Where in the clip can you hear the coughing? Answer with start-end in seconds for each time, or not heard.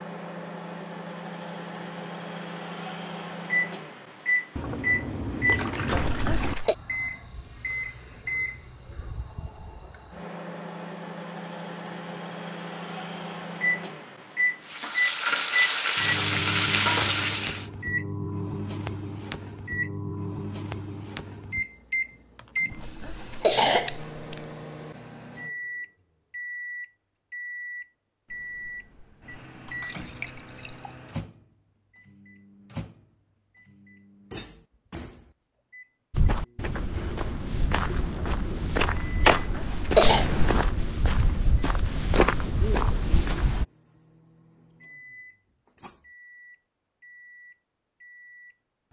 5.9-6.8, 22.7-24.4, 39.4-40.2.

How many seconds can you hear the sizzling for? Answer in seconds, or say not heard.
3 s.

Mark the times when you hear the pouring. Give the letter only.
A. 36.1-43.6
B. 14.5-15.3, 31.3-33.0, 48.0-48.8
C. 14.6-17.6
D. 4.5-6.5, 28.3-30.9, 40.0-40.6
D.